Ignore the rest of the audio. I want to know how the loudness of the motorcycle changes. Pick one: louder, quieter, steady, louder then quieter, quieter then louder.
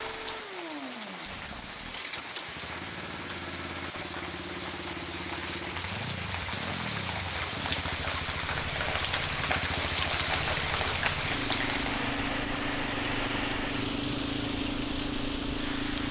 louder.